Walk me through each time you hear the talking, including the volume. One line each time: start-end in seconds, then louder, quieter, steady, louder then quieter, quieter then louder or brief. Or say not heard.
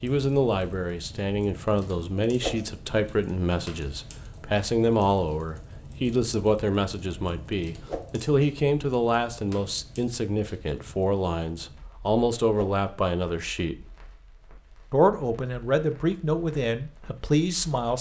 0.0-13.8 steady
14.9-17.9 brief.